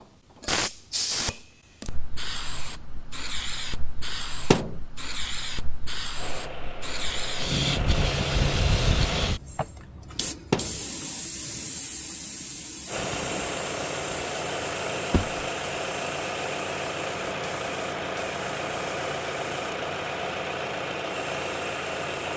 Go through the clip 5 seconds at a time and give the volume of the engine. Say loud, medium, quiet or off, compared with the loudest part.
off, loud, loud, loud, loud.